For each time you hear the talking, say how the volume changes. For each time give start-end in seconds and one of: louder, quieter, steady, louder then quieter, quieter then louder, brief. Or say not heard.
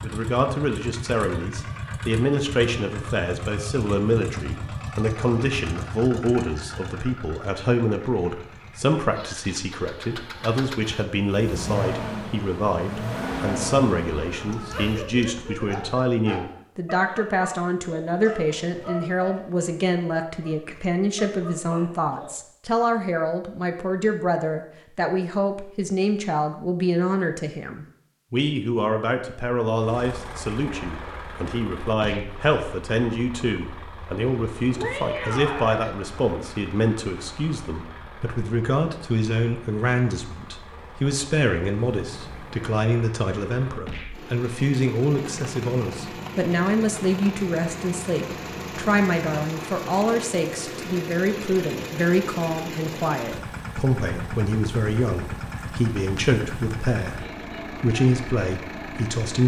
0.0-59.4 steady.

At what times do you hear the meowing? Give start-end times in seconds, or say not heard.
14.2-16.1, 34.8-35.8, 42.0-42.7.